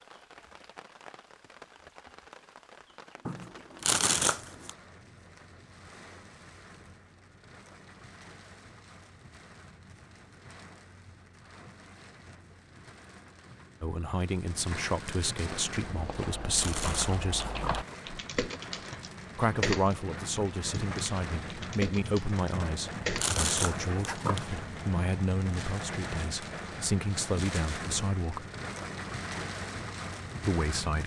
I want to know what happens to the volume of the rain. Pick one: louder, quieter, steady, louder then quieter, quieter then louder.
louder.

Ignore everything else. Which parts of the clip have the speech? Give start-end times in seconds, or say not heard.
13.8-17.4, 19.4-28.4, 30.4-31.0.